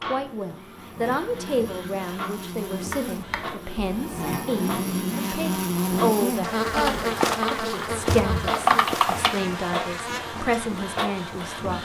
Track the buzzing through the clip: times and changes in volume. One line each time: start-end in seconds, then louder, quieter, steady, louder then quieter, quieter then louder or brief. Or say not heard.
0.0-11.8 louder then quieter.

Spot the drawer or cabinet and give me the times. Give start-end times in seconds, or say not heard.
2.9-3.5, 8.1-8.5.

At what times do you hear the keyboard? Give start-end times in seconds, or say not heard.
6.8-9.4.